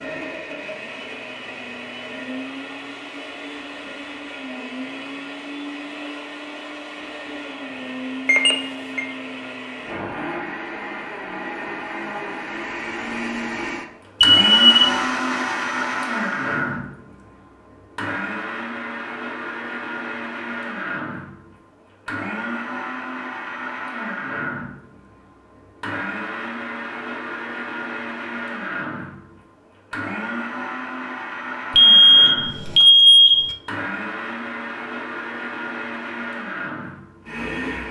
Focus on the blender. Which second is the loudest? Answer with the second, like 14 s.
15 s.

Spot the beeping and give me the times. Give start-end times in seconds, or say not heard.
8.2-9.1, 14.2-14.9, 31.8-33.5.